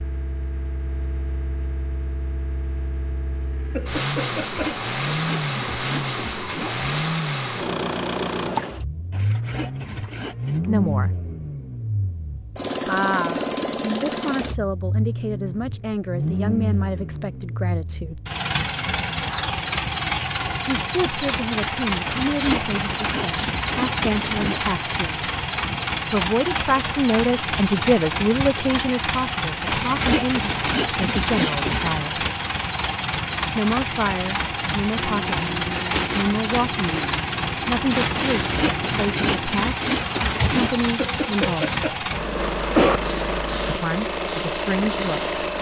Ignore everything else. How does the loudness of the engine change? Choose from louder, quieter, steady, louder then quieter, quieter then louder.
steady.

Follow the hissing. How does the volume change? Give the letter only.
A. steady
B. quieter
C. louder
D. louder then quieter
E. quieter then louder
A.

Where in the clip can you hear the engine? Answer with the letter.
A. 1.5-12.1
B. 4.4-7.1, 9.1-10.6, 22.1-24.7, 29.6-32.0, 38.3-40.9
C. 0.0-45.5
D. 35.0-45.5
C.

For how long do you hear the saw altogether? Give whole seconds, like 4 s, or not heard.
12 s.